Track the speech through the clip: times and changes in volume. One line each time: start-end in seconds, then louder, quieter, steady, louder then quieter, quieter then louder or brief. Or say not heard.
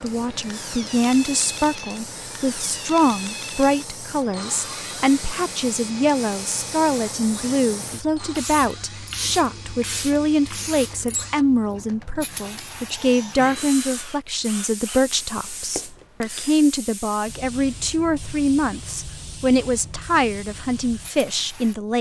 0.0-21.9 steady.